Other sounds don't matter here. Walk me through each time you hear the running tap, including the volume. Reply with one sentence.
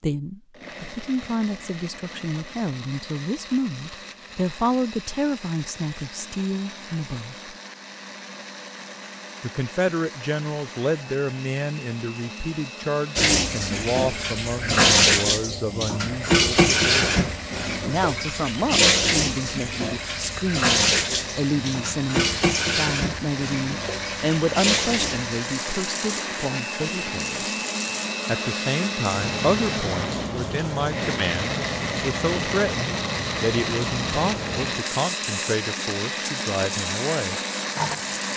The running tap can be heard from 13.2 to 38.3 s, getting quieter.